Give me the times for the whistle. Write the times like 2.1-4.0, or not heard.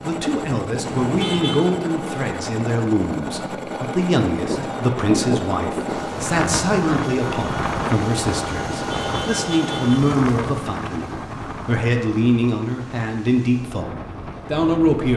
not heard.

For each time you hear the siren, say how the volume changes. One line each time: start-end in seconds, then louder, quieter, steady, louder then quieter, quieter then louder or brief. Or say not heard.
not heard.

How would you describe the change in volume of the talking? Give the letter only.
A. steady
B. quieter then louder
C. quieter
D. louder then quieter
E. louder
A.